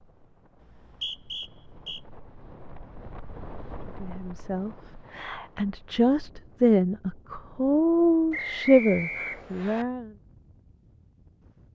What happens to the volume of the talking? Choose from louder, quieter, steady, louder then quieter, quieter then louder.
louder.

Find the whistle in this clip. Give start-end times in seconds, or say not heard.
0.6-2.0, 8.3-9.8.